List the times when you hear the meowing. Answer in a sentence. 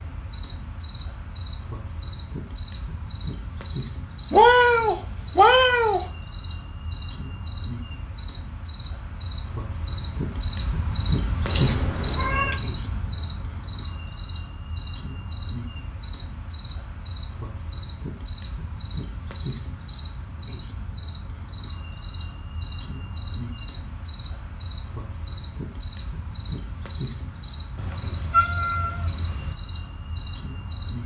You can hear the meowing from 4.3 to 6.0 s, from 11.4 to 12.6 s and from 27.8 to 29.6 s.